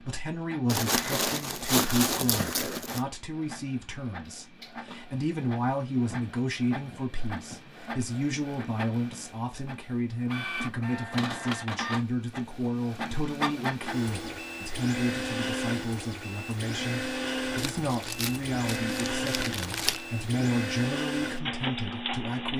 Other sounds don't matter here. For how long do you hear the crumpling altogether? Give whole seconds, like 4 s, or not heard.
5 s.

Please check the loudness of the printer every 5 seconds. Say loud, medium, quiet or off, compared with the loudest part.
quiet, medium, loud, loud, loud.